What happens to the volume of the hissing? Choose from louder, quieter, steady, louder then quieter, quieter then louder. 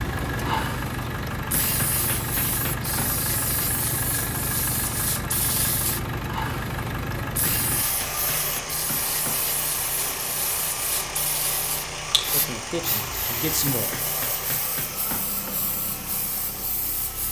quieter.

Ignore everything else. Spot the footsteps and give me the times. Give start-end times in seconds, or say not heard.
not heard.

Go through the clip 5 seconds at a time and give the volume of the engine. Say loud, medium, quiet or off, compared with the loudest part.
loud, loud, loud, medium.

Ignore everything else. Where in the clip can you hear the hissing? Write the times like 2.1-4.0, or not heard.
0.0-17.2.